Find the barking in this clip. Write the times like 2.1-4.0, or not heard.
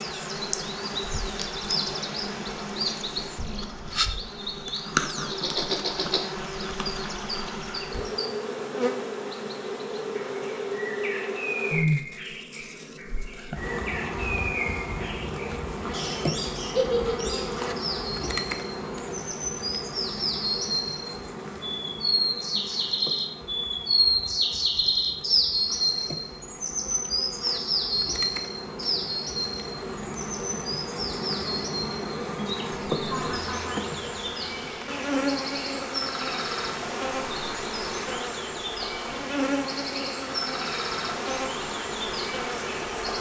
not heard.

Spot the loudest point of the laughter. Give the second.
17 s.